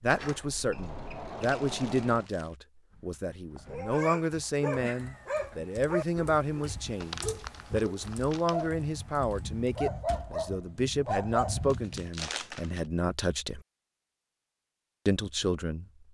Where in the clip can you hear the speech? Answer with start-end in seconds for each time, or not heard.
0.0-13.6, 15.1-15.8.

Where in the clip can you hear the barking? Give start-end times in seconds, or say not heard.
3.6-12.1.